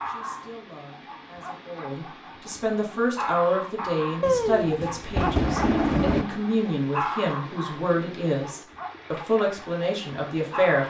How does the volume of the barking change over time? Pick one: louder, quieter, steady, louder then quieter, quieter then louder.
louder then quieter.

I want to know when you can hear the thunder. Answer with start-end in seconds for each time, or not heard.
4.2-6.2.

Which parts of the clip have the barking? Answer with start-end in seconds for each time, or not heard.
0.0-10.8.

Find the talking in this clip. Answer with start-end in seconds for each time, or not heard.
0.0-10.8.